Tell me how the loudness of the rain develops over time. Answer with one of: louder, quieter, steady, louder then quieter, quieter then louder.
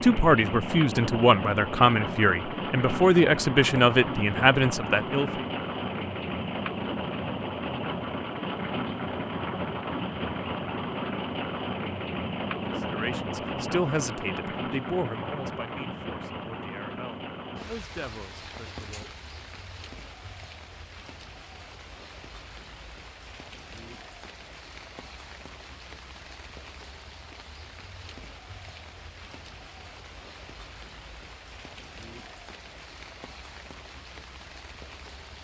quieter.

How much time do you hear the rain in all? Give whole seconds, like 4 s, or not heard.
35 s.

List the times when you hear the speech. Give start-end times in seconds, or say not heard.
0.0-5.5, 12.8-19.1.